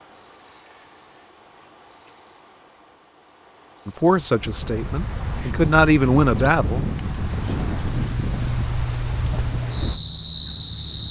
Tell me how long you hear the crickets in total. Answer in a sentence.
The crickets can be heard for 11 seconds in total.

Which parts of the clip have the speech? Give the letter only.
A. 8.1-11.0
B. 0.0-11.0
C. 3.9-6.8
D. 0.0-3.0
C.